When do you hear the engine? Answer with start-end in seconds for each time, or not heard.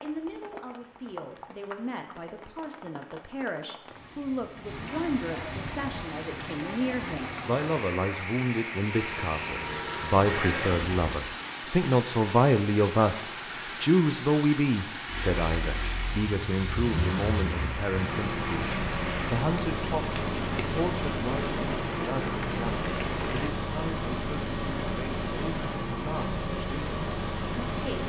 8.8-11.2, 15.1-28.0.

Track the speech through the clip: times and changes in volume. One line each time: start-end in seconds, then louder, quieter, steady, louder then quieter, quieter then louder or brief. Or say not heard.
0.0-28.0 louder then quieter.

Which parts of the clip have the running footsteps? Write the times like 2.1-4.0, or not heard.
not heard.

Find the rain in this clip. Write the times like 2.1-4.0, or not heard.
0.0-23.5.